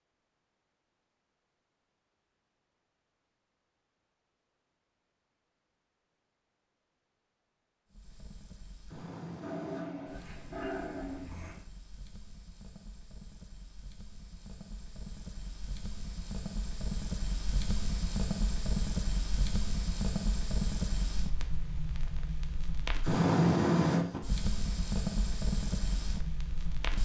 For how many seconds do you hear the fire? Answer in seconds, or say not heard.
19 s.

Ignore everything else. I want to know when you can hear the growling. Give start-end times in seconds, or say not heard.
9.4-11.6.